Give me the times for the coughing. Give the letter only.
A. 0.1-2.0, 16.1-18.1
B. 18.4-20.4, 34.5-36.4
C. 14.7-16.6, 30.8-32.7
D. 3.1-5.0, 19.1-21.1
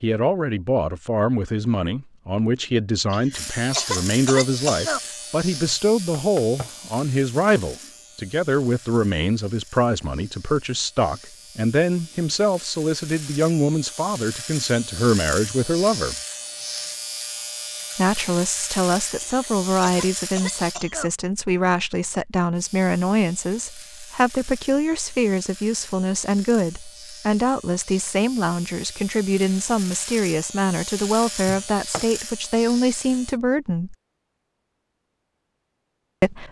D.